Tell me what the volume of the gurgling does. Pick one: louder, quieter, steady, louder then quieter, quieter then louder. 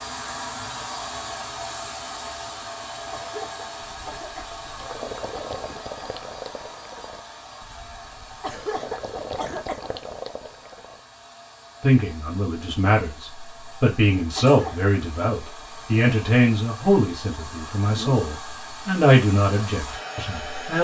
quieter then louder.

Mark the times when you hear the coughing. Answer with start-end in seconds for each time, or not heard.
3.1-4.5, 8.4-9.9, 14.3-14.9.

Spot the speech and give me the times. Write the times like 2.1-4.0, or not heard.
11.8-20.7.